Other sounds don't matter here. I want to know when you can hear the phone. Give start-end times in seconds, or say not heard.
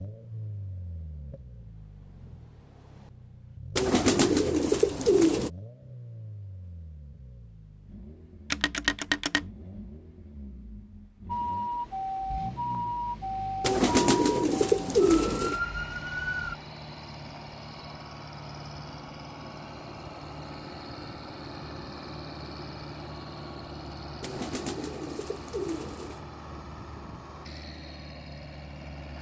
8.5-9.4.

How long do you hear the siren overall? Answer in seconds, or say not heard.
5 s.